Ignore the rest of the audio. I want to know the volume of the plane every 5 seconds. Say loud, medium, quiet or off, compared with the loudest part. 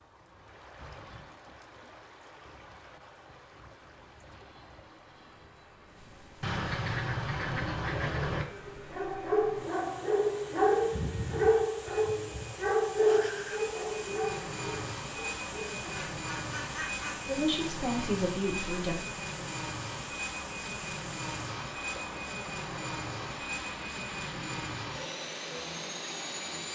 quiet, quiet, medium, loud, loud, loud.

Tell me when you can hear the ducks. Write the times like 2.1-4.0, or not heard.
6.4-8.4, 15.9-17.3.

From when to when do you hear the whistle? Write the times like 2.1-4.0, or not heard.
not heard.